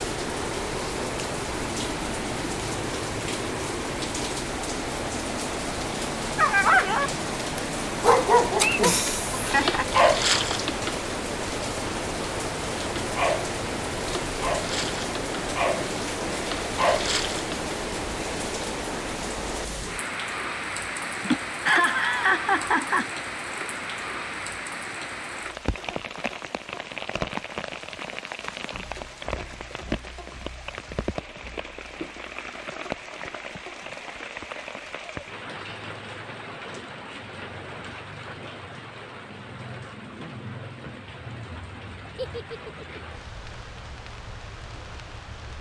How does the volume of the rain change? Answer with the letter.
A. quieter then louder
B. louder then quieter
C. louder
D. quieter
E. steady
D.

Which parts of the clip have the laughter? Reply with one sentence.
The laughter can be heard from 8.6 to 9.9 s, from 21.2 to 23.1 s and from 42.1 to 43.0 s.